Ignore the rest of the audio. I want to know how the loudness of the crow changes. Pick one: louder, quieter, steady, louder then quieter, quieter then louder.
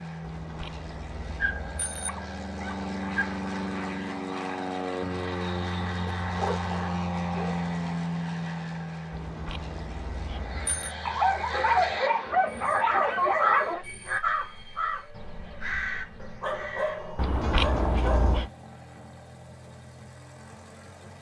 louder then quieter.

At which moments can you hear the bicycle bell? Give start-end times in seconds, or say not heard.
0.2-2.1, 9.1-10.9, 17.1-18.5.